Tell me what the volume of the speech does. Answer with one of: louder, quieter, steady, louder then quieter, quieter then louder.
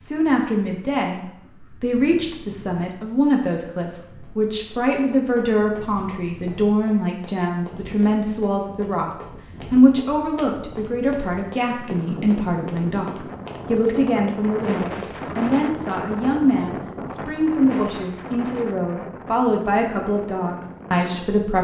steady.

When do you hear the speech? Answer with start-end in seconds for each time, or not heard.
0.0-21.5.